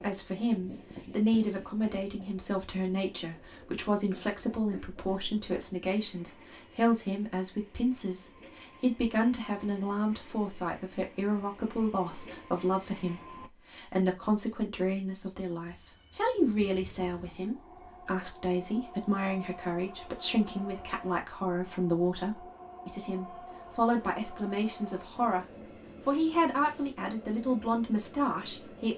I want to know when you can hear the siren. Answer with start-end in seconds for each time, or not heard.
not heard.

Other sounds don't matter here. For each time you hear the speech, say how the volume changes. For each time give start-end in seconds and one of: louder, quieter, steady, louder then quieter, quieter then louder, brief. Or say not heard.
0.0-28.9 steady.